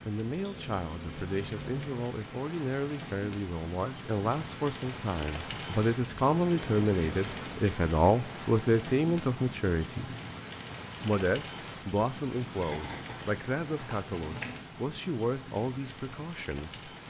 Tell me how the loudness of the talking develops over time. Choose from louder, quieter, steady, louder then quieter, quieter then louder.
louder then quieter.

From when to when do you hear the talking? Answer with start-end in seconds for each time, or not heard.
0.1-10.2, 11.0-16.9.